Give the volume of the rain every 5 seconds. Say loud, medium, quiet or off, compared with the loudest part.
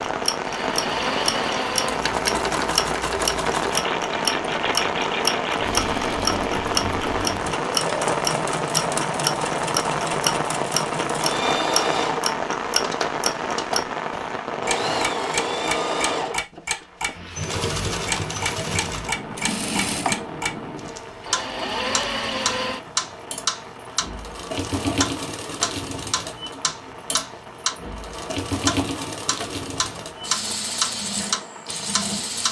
loud, loud, loud, medium, quiet, quiet, quiet.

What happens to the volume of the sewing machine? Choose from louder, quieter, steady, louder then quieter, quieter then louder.
steady.